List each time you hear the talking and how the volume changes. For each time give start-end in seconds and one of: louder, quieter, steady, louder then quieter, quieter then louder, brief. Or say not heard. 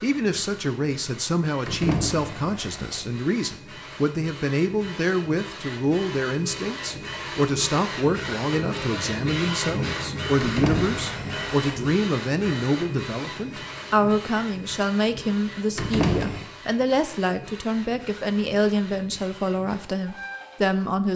0.0-21.1 steady.